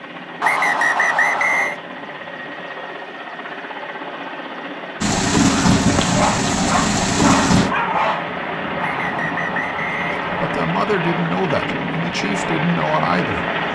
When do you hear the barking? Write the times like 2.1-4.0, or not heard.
6.0-8.2.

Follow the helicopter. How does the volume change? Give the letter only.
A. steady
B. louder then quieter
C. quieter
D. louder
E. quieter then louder
D.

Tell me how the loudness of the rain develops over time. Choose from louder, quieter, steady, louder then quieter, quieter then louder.
quieter.